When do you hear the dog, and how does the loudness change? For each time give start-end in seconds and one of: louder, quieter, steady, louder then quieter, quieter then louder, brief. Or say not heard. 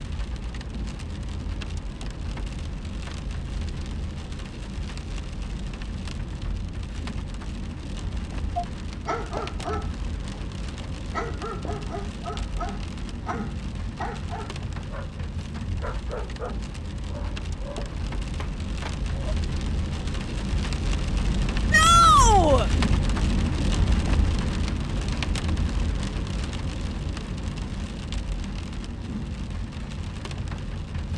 8.6-19.4 quieter.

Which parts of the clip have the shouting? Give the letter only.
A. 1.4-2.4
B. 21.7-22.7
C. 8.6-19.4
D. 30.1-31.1
B.